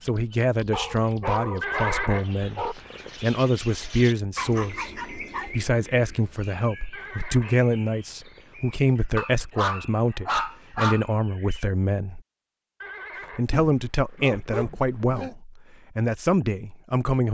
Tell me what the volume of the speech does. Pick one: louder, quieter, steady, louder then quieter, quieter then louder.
steady.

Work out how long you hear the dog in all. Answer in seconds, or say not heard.
7 s.